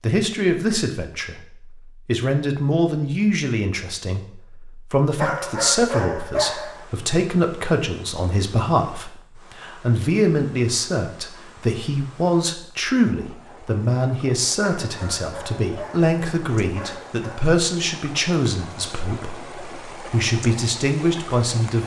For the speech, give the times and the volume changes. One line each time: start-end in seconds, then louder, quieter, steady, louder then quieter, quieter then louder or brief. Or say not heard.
0.0-21.8 steady.